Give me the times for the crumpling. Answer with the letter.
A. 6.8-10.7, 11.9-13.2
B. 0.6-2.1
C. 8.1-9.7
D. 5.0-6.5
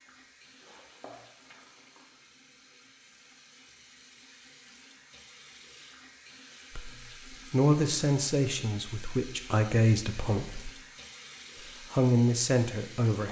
B.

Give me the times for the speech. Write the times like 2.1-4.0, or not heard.
6.8-10.7, 11.9-13.2.